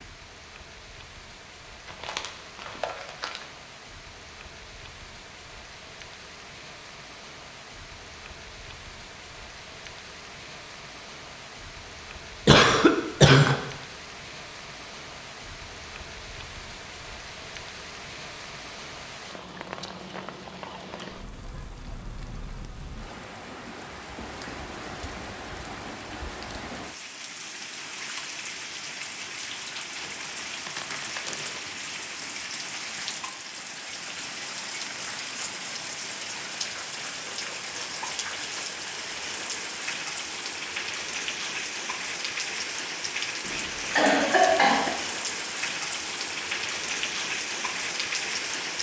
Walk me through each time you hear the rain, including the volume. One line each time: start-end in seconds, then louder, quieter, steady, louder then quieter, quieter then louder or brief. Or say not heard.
0.0-48.7 louder.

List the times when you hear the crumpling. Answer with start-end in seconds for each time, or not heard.
1.9-3.5, 29.9-31.6.